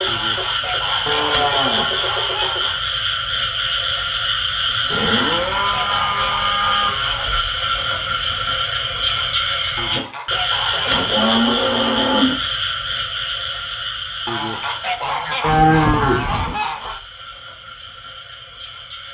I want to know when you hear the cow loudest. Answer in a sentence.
The loudest moment of the cow is at 16 seconds.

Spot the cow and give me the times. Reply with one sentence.
You can hear the cow from 1.1 to 1.9 s, from 4.9 to 6.9 s, from 10.8 to 12.3 s and from 15.4 to 16.6 s.